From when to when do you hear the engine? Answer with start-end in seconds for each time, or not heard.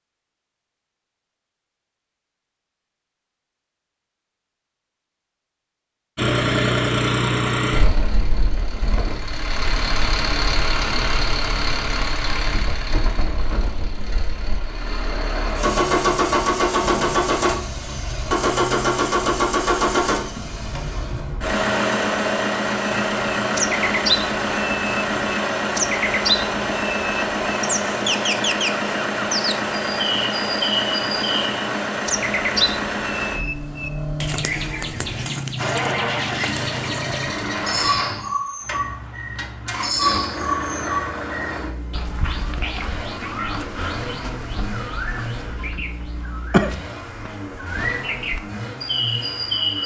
6.2-49.8.